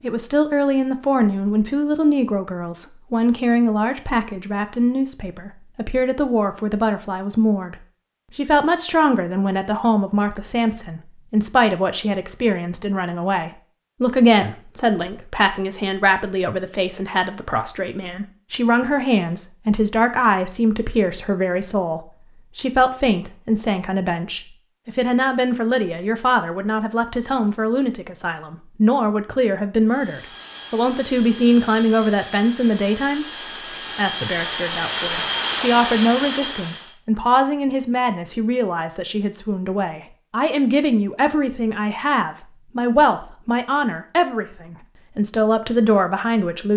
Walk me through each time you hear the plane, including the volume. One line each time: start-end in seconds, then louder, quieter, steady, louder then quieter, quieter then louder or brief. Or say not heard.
29.9-37.0 louder.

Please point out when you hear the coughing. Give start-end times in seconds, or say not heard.
not heard.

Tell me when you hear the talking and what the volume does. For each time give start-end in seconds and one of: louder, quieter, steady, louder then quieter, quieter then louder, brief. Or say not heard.
0.0-46.7 steady.